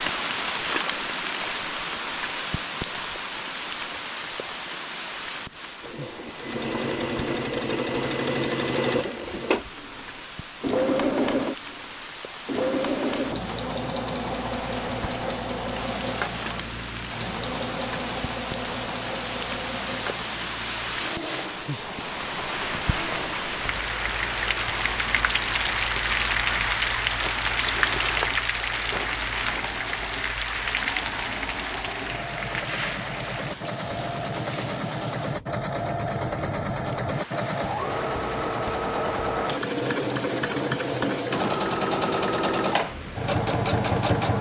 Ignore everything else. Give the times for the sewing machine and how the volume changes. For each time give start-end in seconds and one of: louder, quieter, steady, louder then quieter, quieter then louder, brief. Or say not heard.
5.8-44.3 quieter then louder.